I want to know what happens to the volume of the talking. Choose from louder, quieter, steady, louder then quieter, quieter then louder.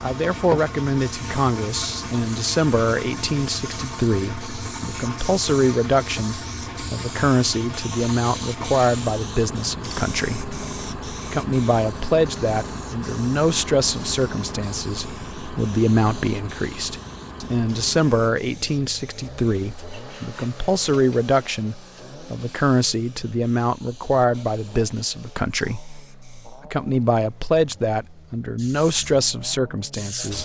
steady.